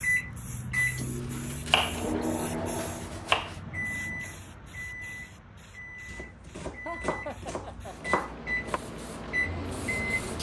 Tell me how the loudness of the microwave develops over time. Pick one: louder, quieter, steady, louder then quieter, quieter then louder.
quieter then louder.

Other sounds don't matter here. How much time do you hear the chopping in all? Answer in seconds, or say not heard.
5 s.